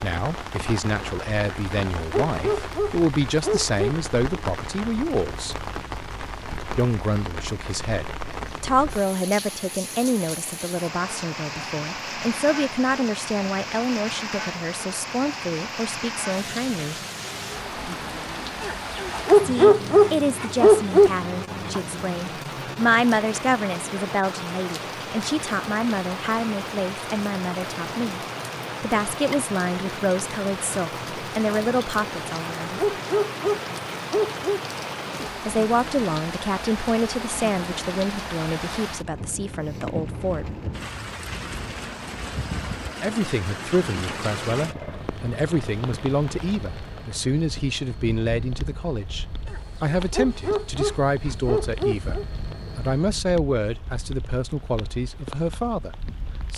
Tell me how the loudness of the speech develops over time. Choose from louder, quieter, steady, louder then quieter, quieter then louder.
steady.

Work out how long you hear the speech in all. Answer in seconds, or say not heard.
47 s.